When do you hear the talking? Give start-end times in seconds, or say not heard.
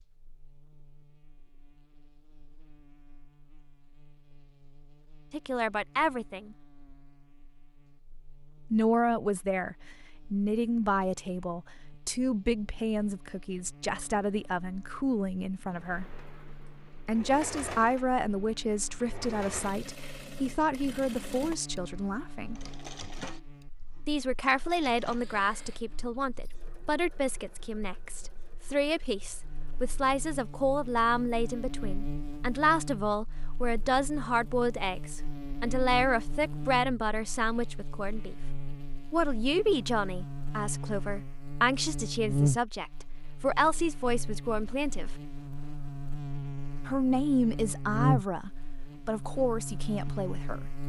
5.3-6.5, 8.7-16.1, 17.1-22.6, 24.1-38.4, 39.1-45.1, 46.9-50.6.